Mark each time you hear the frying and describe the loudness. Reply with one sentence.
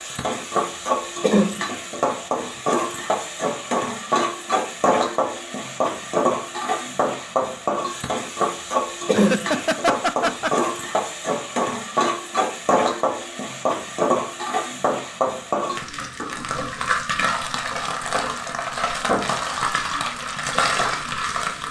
The frying can be heard from 0.0 to 21.6 s, at a steady volume.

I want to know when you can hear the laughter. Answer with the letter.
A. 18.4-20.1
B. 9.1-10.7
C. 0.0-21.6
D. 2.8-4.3
B.